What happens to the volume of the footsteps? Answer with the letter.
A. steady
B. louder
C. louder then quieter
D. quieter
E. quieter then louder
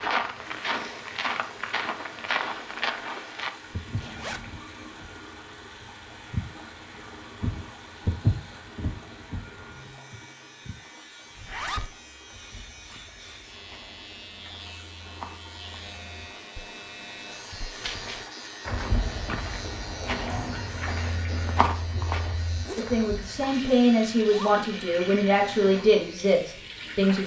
E.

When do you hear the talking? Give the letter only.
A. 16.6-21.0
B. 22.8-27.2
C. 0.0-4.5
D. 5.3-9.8
B.